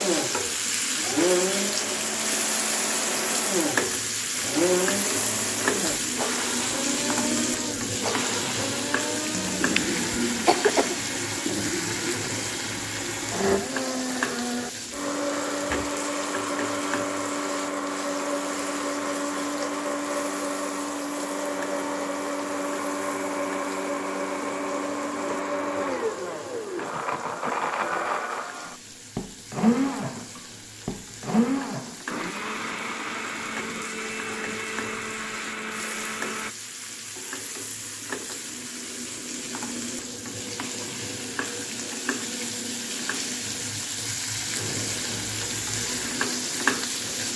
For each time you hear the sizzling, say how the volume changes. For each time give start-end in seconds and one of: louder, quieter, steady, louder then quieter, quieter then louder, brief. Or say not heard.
0.0-47.3 quieter then louder.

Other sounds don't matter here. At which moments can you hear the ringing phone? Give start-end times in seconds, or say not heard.
not heard.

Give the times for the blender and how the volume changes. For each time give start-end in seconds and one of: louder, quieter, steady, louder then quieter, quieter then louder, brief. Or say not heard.
0.0-36.5 steady.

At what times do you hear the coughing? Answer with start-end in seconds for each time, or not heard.
9.3-10.9.